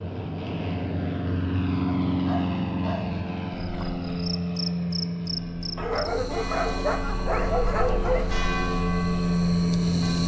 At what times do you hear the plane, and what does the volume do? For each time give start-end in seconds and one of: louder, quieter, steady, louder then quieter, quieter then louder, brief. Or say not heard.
0.0-10.2 quieter then louder.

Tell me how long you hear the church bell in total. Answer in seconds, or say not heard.
5 s.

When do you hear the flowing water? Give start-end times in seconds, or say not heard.
not heard.